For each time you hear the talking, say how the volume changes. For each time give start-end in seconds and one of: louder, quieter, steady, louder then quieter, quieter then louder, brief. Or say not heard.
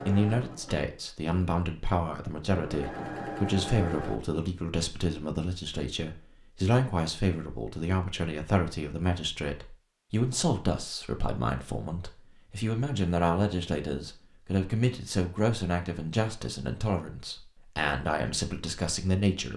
0.1-19.5 steady.